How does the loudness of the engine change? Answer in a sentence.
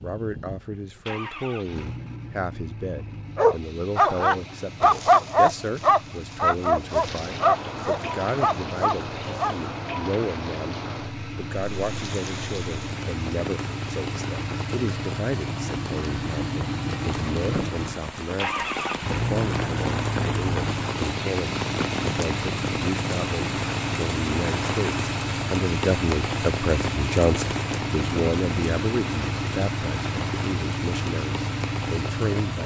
The loudness of the engine goes up.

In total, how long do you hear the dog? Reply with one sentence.
You can hear the dog for 6 seconds altogether.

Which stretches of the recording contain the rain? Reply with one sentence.
The rain can be heard from 6.8 to 32.6 s.